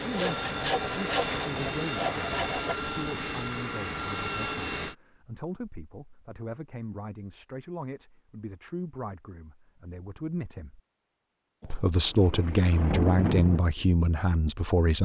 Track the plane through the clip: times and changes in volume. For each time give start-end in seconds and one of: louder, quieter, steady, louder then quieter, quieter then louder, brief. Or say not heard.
0.0-5.0 steady.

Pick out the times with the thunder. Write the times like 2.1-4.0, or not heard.
11.6-13.6.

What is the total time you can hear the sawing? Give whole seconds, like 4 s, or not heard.
3 s.